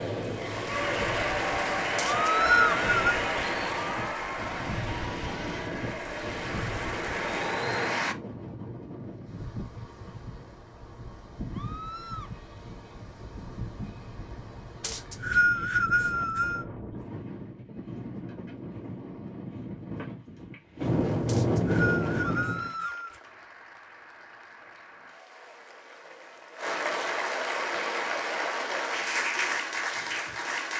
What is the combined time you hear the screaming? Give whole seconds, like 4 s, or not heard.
2 s.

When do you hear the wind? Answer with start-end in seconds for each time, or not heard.
0.1-22.7.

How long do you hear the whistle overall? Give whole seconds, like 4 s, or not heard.
5 s.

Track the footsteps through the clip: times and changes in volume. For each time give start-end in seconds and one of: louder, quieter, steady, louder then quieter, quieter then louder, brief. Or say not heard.
not heard.